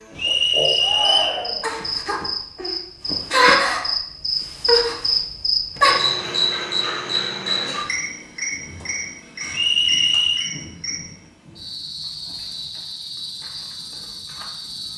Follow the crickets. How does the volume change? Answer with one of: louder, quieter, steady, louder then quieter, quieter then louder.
louder then quieter.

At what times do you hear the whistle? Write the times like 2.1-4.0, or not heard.
0.1-1.4, 9.5-10.5.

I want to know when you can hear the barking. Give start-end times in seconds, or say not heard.
not heard.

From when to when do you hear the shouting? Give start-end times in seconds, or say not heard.
0.8-1.7.